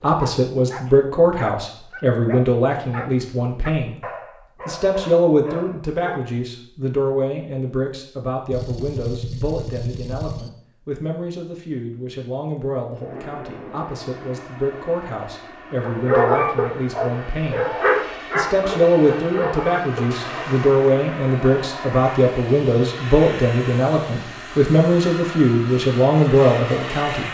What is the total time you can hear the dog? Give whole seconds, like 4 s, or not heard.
11 s.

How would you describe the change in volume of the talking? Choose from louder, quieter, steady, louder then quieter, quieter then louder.
quieter then louder.